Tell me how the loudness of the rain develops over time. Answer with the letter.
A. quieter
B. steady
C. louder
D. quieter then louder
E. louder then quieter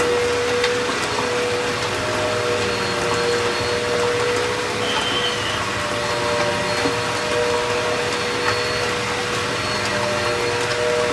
B.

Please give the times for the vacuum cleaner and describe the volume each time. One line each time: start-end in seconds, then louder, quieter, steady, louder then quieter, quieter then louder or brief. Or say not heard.
0.0-11.0 steady.